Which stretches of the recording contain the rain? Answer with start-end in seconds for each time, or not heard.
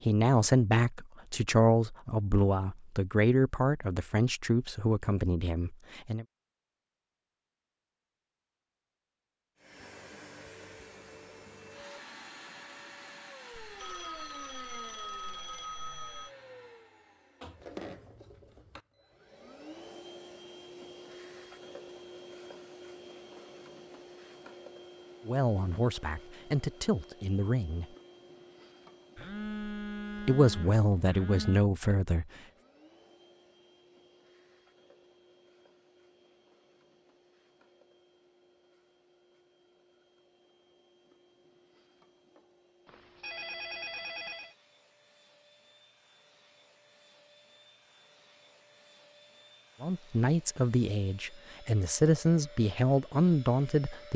not heard.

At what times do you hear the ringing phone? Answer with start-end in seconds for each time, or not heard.
13.5-16.3, 29.1-31.6, 42.9-44.5.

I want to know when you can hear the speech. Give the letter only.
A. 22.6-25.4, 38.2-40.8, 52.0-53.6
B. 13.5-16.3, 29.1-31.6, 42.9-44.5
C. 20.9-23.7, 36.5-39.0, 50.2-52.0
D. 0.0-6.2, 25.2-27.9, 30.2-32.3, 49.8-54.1
D.